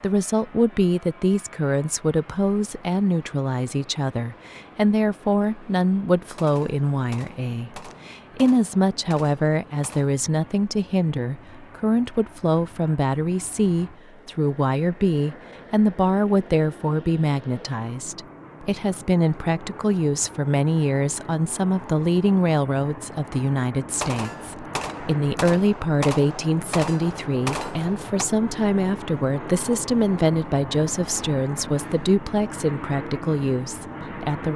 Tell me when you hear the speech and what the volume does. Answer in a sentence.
You can hear the speech from 0.0 to 34.5 s, at a steady volume.